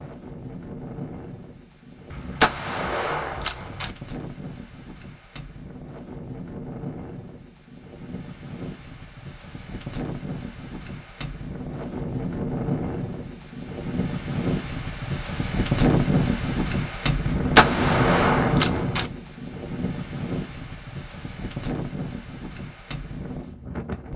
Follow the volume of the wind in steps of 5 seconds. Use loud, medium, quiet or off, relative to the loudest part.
quiet, quiet, medium, loud, medium.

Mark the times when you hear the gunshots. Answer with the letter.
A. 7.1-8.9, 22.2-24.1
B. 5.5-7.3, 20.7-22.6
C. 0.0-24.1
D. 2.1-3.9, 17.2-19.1
D.